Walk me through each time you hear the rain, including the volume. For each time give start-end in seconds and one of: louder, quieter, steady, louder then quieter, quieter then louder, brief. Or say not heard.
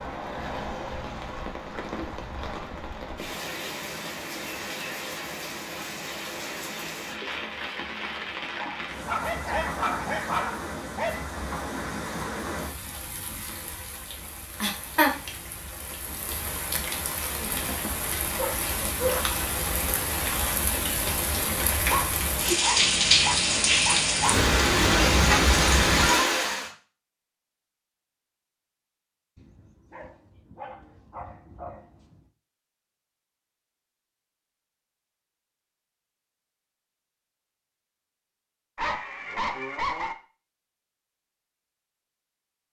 0.0-26.7 louder.